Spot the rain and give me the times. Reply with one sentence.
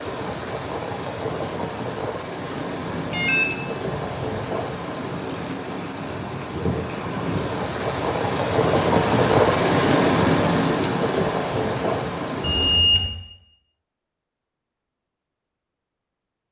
You can hear the rain from 0.0 to 12.9 s.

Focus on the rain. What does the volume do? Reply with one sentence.
The volume of the rain goes up.